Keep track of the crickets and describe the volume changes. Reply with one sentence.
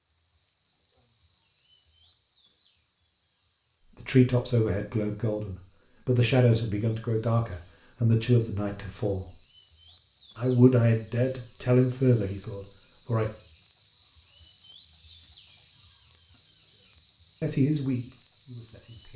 The volume of the crickets goes up.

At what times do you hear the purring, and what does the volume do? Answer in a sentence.
You can't hear the purring here.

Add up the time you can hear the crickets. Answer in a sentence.
The crickets can be heard for 19 seconds in total.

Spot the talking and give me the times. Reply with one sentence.
You can hear the talking from 4.0 to 9.3 s, from 10.3 to 13.3 s and from 17.4 to 19.1 s.